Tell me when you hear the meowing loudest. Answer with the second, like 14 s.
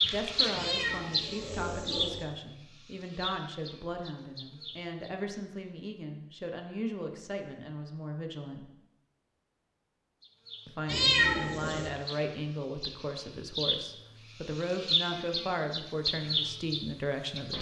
11 s.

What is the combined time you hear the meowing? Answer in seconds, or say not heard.
3 s.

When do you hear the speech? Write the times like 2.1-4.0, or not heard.
0.0-8.7, 10.7-17.5.